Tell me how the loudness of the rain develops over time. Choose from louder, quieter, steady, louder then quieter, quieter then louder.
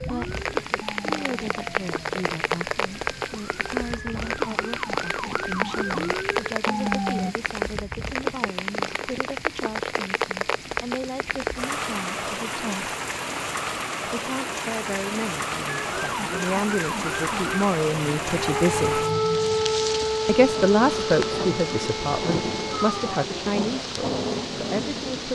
steady.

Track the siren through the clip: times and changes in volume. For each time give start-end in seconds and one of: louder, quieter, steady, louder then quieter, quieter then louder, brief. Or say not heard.
0.0-7.3 quieter then louder
15.7-23.2 louder then quieter.